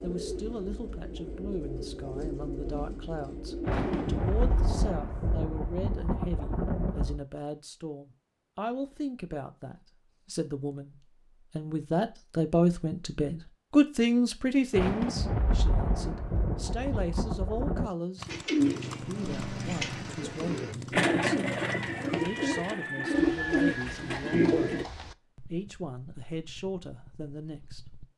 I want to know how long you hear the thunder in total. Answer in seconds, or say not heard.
7 s.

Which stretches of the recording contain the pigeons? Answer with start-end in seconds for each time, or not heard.
0.0-5.0, 18.2-24.9.